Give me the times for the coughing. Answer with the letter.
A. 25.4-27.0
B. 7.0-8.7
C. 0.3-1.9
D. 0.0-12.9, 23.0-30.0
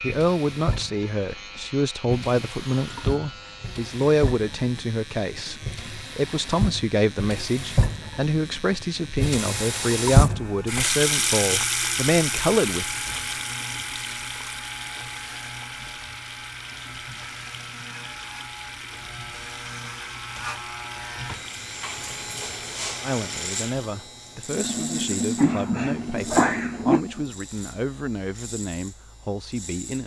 A.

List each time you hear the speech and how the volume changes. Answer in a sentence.
You can hear the speech from 0.0 to 12.9 s, at a steady volume; and from 23.0 to 30.0 s, at a steady volume.